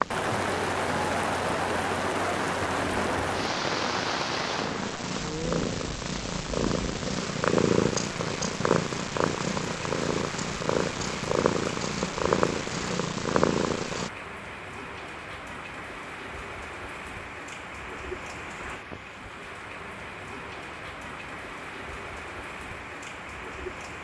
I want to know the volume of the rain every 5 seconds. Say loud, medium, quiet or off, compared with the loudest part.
loud, medium, medium, medium, medium.